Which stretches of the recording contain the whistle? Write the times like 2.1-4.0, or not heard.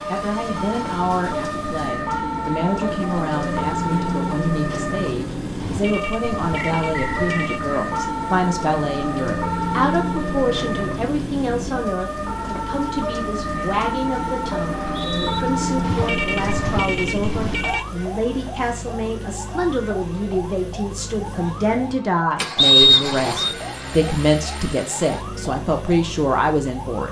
6.5-7.5, 14.7-15.4, 22.6-23.6.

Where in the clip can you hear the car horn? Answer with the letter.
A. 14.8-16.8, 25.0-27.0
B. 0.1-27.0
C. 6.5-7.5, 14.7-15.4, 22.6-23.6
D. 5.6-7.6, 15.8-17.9
D.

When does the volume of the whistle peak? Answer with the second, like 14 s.
23 s.